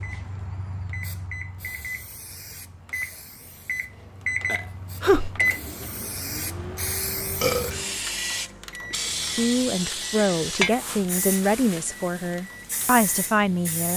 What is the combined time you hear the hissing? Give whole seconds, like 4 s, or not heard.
14 s.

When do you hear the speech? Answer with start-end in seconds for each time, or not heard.
9.3-13.9.